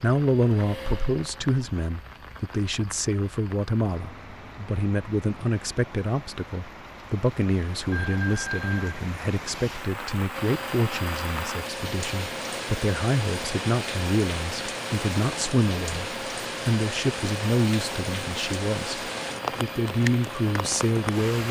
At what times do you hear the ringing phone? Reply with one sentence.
You can hear the ringing phone from 7.9 to 8.9 s.